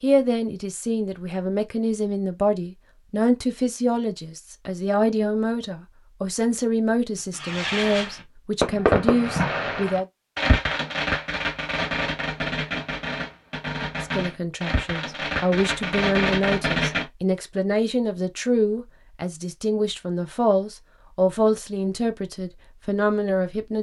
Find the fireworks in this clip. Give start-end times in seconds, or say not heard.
7.3-17.1.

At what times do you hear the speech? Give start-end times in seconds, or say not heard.
0.0-10.1, 14.0-23.7.